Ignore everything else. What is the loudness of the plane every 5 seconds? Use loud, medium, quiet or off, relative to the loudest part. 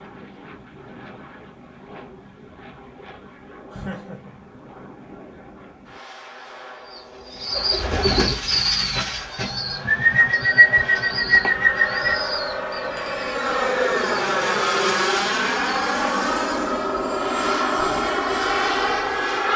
quiet, quiet, loud, loud.